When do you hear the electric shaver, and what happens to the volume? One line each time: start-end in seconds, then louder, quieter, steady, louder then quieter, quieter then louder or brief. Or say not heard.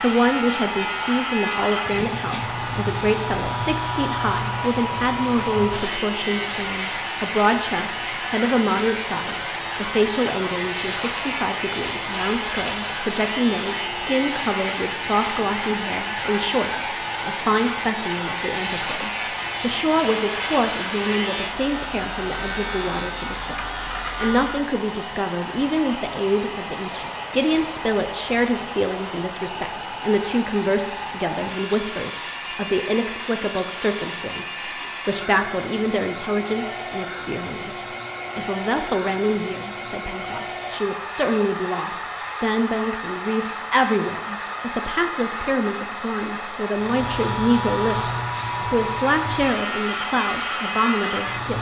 0.0-24.7 steady
46.8-51.5 steady.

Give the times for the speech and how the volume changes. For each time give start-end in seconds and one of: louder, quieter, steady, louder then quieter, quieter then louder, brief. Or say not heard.
0.0-51.5 steady.